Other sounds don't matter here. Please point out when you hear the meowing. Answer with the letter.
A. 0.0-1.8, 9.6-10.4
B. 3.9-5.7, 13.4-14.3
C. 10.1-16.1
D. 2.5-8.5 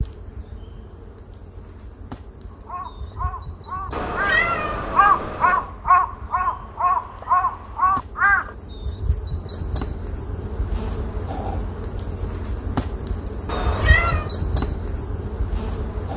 B.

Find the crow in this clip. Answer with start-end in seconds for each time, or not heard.
2.5-8.5.